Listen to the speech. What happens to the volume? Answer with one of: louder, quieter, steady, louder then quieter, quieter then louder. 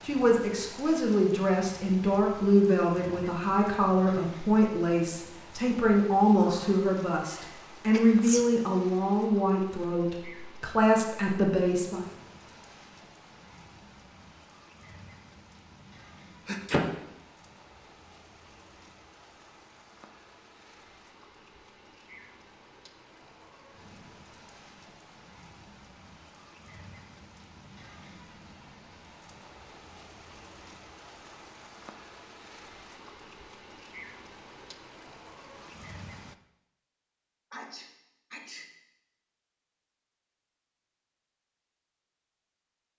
steady.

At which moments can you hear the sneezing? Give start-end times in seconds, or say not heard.
6.4-8.4, 16.4-16.9, 37.5-38.7.